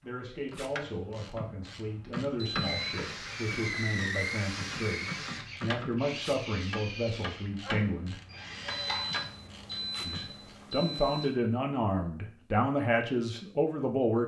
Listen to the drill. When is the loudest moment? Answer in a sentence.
The volume of the drill peaks at 4 seconds.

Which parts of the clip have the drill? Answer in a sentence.
You can hear the drill from 2.6 to 10.1 s.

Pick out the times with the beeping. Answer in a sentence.
The beeping can be heard from 2.4 to 3.0 s and from 8.7 to 11.3 s.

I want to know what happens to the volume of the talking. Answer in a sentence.
The volume of the talking goes up.